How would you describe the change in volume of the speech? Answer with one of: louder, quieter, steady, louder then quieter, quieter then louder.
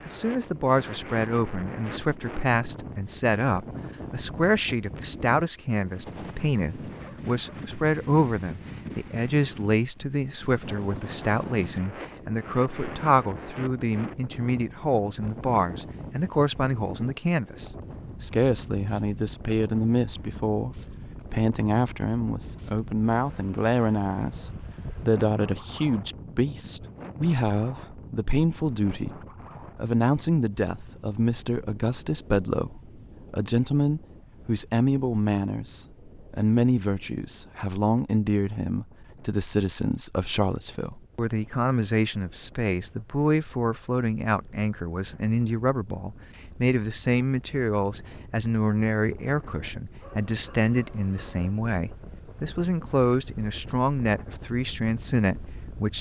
steady.